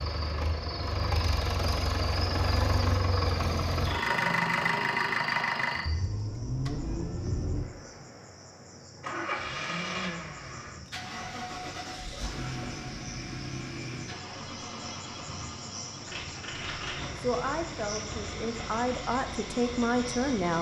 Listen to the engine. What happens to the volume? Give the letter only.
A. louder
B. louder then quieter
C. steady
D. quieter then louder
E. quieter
E.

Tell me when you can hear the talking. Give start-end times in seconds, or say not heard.
17.1-20.5.